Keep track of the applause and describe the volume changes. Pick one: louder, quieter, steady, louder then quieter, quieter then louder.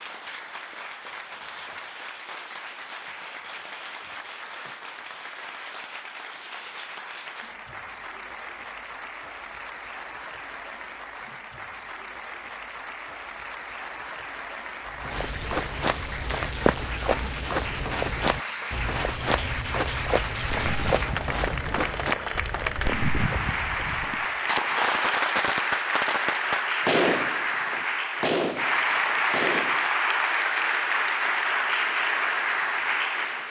louder.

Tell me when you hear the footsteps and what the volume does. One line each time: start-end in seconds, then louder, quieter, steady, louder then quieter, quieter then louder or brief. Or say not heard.
14.9-24.5 quieter.